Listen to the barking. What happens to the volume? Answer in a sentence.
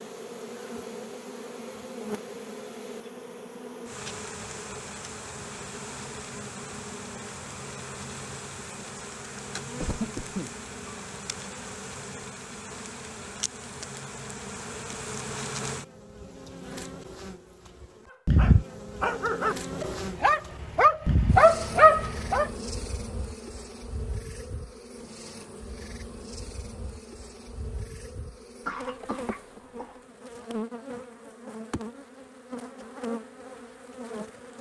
The volume of the barking goes up.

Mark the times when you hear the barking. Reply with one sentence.
You can hear the barking from 18.1 to 22.5 s.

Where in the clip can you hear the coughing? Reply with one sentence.
The coughing can be heard from 9.8 to 10.6 s and from 28.6 to 29.9 s.